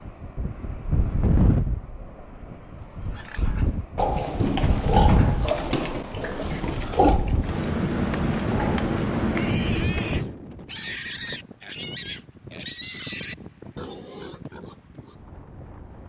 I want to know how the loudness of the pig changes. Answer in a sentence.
The loudness of the pig goes down.